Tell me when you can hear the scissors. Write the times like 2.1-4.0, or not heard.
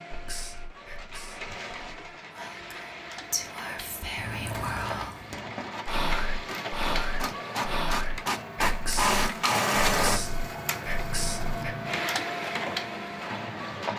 4.2-5.0.